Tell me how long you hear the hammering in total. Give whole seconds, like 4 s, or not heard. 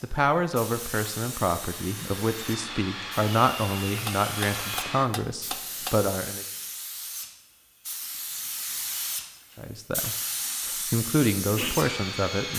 2 s.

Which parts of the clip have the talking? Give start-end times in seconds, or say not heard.
0.0-6.5, 9.6-12.5.